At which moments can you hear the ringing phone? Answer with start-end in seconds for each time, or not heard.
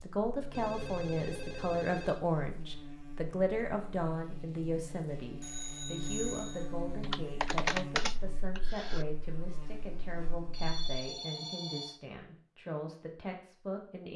0.5-2.2, 5.4-6.7, 10.5-12.0.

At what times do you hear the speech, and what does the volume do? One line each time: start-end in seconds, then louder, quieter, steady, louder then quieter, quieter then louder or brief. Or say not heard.
0.0-14.1 quieter.